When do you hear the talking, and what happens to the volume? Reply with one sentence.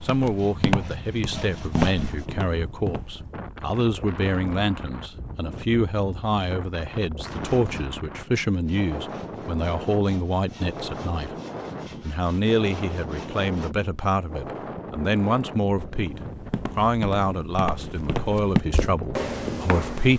You can hear the talking from 0.0 to 11.3 s, at a steady volume; and from 12.0 to 20.1 s, at a steady volume.